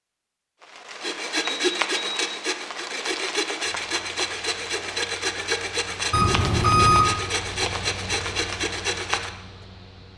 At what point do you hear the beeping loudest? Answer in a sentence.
The volume of the beeping peaks at 7 seconds.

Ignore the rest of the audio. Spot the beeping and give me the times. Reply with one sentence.
The beeping can be heard from 1.6 to 2.3 s and from 6.1 to 7.1 s.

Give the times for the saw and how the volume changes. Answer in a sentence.
You can hear the saw from 0.6 to 9.3 s, at a steady volume.